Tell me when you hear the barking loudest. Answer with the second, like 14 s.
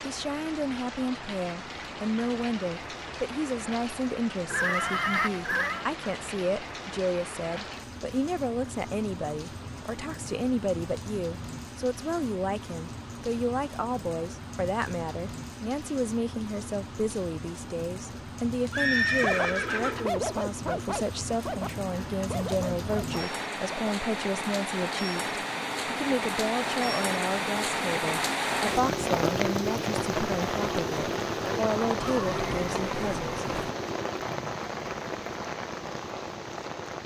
20 s.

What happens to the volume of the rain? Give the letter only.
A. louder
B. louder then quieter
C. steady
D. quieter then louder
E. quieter
A.